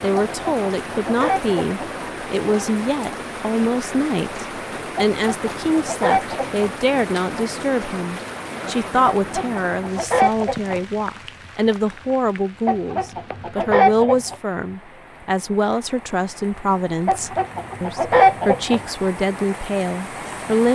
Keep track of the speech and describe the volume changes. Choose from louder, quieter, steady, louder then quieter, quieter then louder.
steady.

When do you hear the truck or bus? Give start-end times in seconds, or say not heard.
not heard.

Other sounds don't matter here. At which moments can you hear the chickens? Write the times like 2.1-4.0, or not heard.
0.3-1.8, 5.0-6.8, 9.1-10.8, 12.7-14.3, 17.1-18.9.